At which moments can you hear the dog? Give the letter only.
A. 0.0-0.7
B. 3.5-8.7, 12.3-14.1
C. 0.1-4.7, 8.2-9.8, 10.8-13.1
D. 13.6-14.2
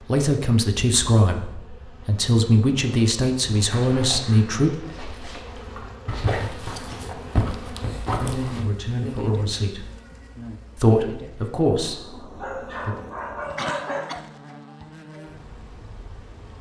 B.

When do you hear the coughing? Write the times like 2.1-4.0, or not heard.
13.6-14.2.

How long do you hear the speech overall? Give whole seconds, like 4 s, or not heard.
9 s.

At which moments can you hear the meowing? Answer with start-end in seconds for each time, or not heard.
not heard.